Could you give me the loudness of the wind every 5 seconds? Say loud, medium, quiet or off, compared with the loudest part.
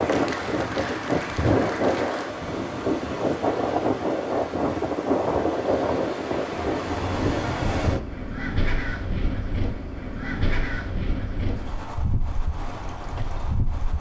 loud, loud, medium.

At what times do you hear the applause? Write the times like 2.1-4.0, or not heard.
0.0-2.3.